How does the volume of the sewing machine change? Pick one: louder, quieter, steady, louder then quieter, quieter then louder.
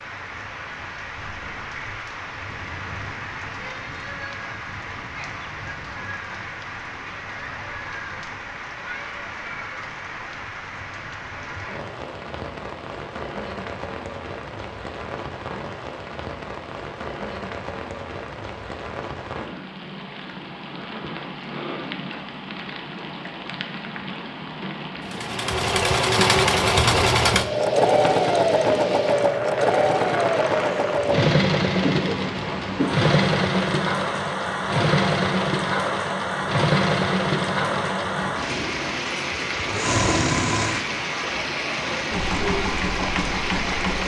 quieter.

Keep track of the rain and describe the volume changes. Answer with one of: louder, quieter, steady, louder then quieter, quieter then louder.
louder.